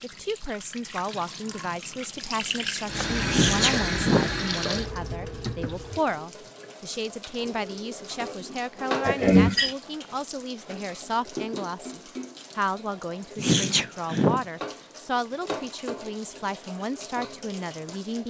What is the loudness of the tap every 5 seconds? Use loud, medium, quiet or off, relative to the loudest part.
loud, medium, medium, medium.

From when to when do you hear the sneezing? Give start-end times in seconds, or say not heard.
3.2-4.3, 9.0-9.8, 13.3-14.4.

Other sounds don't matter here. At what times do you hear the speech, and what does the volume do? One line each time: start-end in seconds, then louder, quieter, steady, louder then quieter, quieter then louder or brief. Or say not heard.
0.0-18.2 steady.